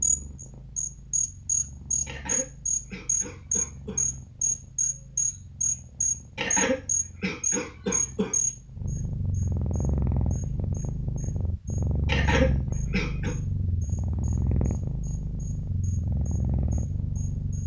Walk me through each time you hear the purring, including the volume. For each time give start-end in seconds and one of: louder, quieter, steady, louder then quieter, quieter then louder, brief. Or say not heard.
0.0-17.6 louder.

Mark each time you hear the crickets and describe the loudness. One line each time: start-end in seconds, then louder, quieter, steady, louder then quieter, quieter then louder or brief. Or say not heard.
0.0-17.6 quieter.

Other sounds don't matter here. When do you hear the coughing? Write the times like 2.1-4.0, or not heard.
2.0-4.0, 6.3-8.3, 12.1-13.3.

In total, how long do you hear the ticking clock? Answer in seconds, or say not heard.
not heard.